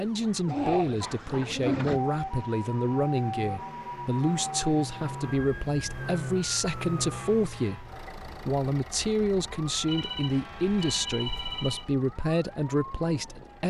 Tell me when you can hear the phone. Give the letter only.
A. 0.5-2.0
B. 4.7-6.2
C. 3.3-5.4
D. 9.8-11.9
D.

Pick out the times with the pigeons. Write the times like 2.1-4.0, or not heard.
0.5-2.0.